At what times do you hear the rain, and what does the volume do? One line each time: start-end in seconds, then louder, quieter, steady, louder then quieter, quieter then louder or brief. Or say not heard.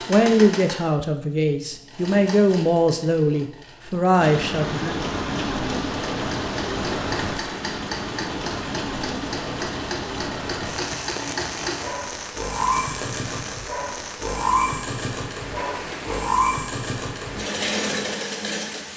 4.2-18.9 quieter.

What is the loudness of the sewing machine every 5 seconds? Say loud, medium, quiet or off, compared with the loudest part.
medium, medium, loud, loud.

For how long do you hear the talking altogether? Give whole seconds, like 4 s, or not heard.
5 s.